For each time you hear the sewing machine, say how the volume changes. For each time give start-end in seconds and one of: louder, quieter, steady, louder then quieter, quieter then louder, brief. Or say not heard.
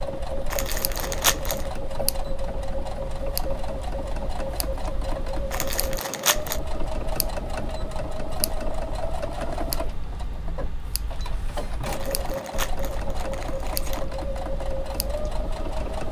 0.0-16.0 steady.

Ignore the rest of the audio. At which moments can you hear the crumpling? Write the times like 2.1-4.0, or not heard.
0.5-1.7, 5.5-6.6, 11.8-14.1.